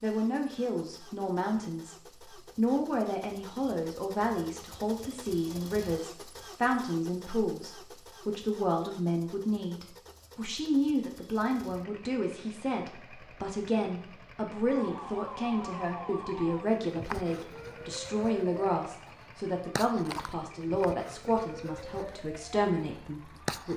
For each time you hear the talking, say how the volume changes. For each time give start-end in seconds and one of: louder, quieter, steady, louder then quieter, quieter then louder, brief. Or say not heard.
0.0-23.7 steady.